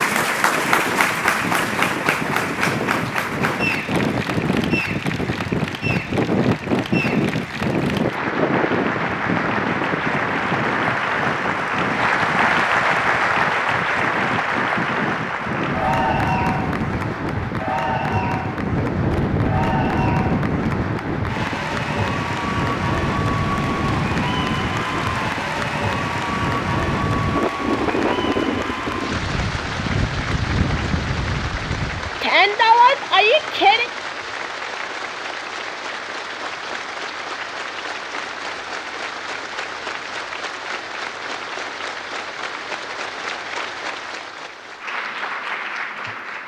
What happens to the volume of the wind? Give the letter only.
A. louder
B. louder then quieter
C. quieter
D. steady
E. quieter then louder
D.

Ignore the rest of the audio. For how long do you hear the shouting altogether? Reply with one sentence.
The shouting can be heard for 2 seconds in total.